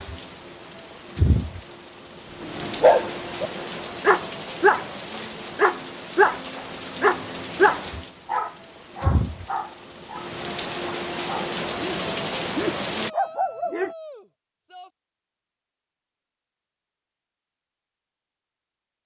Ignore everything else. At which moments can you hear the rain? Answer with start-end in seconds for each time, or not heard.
0.0-13.1.